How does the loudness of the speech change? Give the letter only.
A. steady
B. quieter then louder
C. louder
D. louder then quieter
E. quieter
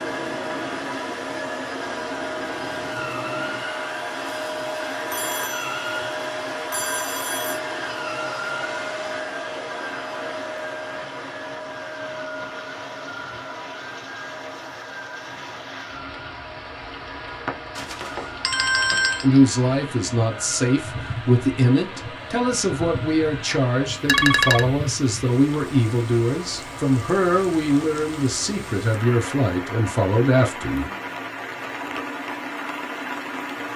A.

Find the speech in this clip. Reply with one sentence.
You can hear the speech from 19.2 to 30.9 s.